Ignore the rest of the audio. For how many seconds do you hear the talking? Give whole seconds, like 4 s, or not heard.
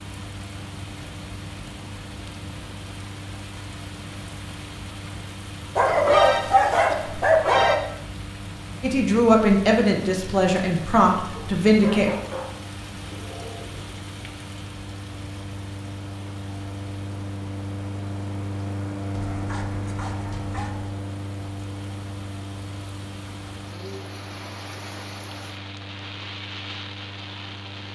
3 s.